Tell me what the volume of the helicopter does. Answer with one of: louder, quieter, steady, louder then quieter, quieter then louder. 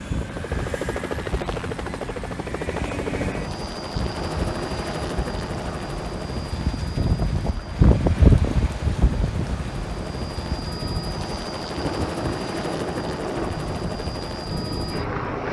quieter then louder.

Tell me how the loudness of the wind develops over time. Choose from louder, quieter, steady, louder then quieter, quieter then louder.
louder then quieter.